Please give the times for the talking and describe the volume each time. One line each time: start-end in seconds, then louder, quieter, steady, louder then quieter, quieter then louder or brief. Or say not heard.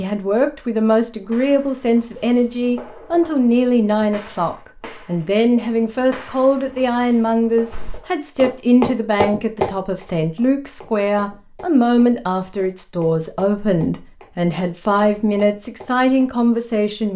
0.0-17.1 steady.